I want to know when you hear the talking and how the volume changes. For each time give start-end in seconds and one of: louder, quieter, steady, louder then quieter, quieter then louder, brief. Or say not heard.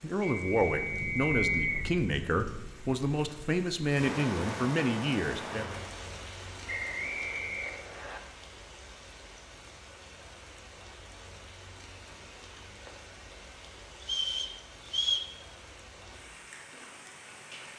0.0-5.7 steady.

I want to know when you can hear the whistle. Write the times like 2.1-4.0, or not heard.
0.2-1.9, 6.7-8.2, 14.1-15.3.